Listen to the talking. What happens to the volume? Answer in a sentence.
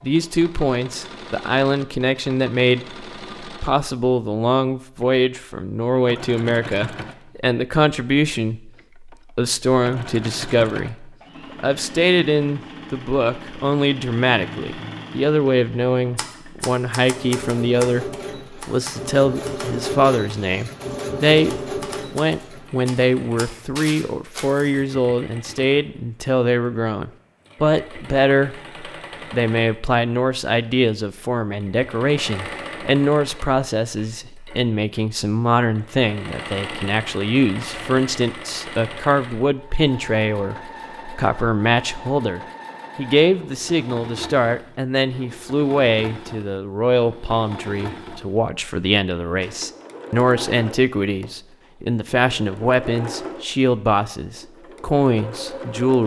The loudness of the talking stays about the same.